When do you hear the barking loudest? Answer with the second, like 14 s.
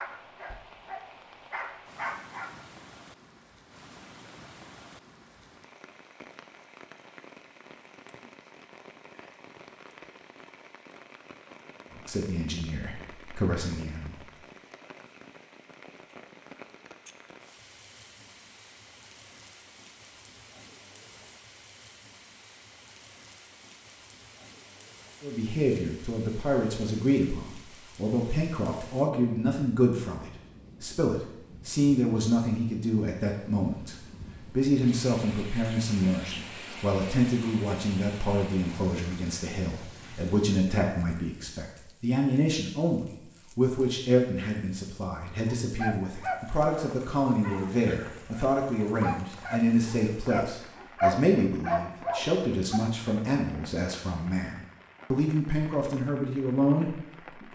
51 s.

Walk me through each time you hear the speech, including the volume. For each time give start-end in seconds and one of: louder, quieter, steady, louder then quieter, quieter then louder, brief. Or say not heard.
11.9-14.2 brief
25.2-57.4 steady.